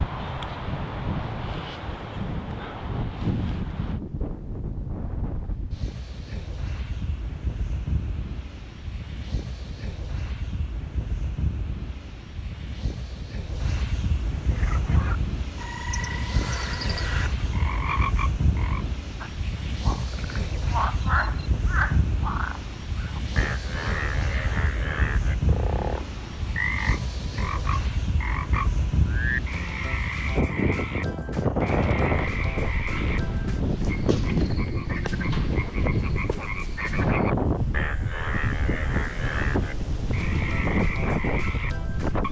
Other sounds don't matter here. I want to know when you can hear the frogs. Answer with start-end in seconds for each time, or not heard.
14.5-42.2.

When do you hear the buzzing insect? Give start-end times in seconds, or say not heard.
not heard.